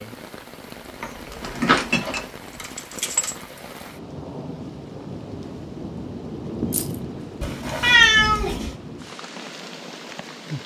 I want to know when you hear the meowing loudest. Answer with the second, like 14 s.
8 s.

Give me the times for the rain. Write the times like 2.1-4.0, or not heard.
0.0-10.6.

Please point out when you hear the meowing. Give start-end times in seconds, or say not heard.
1.0-2.2, 7.4-8.7.